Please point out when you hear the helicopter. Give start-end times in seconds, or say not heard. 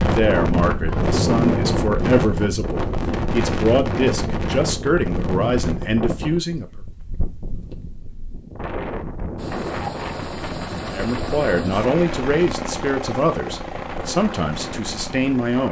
9.3-15.6.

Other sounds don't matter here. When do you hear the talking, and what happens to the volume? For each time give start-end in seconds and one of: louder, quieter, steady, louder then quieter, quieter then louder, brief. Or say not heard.
0.0-6.8 steady
10.8-15.6 quieter.